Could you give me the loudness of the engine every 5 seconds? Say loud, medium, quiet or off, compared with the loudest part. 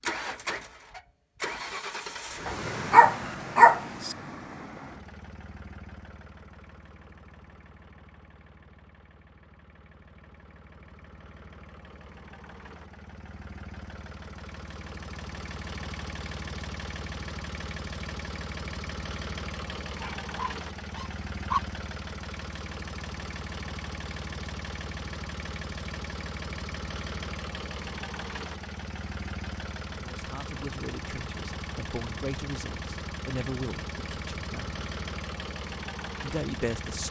loud, quiet, medium, loud, loud, loud, loud, loud.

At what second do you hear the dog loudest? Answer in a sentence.
The loudest moment of the dog is at 4 seconds.